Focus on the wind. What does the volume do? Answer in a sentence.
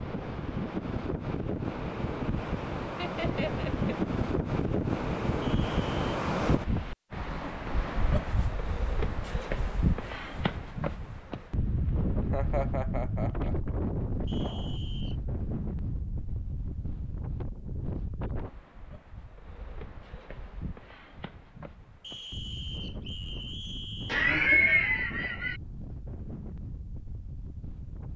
The loudness of the wind goes down.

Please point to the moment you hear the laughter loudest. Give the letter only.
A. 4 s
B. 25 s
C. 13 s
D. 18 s
B.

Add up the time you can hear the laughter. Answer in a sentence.
The laughter can be heard for 4 seconds in total.